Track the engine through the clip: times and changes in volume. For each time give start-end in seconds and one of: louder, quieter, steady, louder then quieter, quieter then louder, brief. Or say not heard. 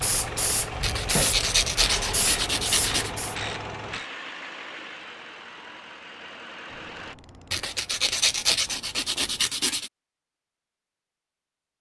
0.0-7.2 quieter.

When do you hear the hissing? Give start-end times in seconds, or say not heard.
0.0-3.4.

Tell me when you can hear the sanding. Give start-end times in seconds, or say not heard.
0.8-3.1, 7.5-9.9.